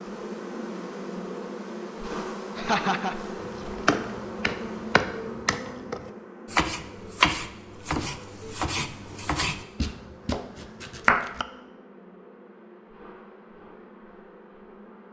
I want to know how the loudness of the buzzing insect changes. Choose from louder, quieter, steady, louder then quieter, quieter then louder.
quieter.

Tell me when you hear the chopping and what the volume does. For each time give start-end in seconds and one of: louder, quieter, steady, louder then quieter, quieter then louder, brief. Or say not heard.
3.4-11.4 quieter.